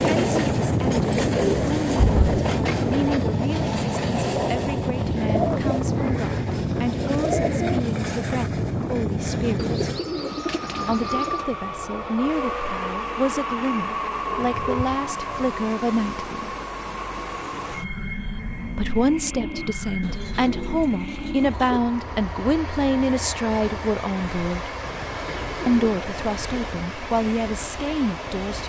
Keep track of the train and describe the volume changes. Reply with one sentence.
The loudness of the train goes down.